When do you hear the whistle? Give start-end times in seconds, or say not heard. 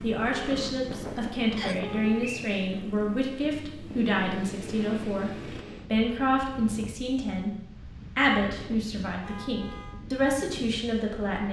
1.6-2.6.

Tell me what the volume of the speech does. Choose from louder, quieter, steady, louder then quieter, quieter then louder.
steady.